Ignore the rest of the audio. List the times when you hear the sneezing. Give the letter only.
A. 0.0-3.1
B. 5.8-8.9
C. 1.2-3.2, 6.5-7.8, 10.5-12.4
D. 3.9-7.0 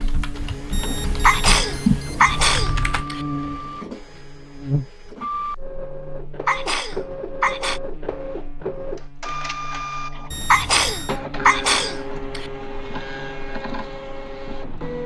C.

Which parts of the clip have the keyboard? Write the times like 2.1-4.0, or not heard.
0.0-3.1.